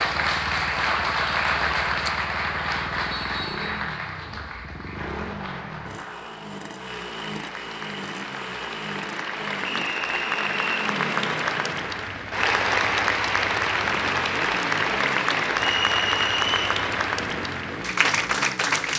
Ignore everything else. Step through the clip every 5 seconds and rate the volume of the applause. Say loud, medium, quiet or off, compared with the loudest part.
loud, medium, loud, loud.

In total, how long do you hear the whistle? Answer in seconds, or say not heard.
3 s.